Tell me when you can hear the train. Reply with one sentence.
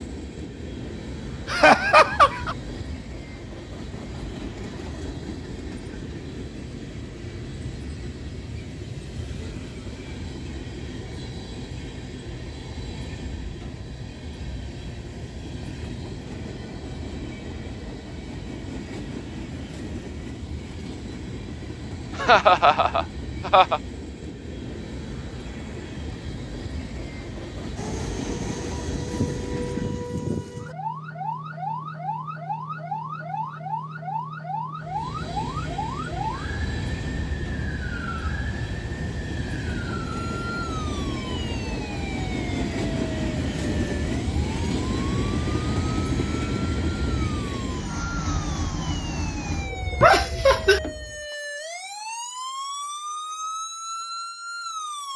The train can be heard from 0.0 to 30.3 s and from 34.8 to 51.2 s.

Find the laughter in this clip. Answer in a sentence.
You can hear the laughter from 1.4 to 2.5 s, from 22.1 to 23.8 s and from 50.0 to 50.8 s.